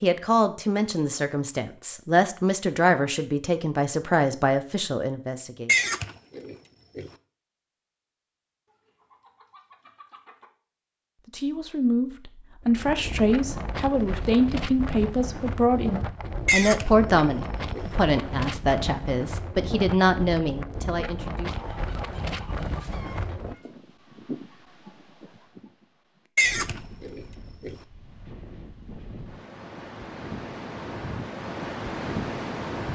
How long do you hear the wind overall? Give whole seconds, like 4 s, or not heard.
20 s.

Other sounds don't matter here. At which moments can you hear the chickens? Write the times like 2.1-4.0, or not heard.
8.7-10.5, 21.5-23.7.